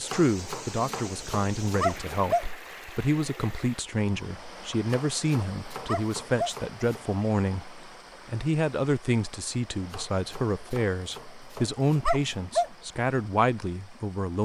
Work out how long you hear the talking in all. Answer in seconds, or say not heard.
14 s.